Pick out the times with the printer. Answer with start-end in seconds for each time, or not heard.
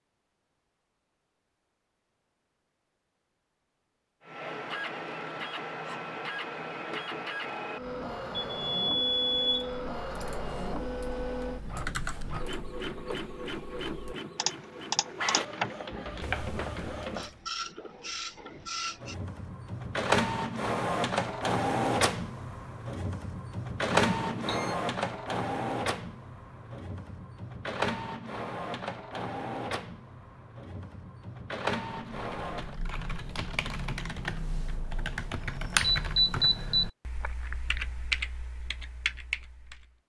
4.2-32.8.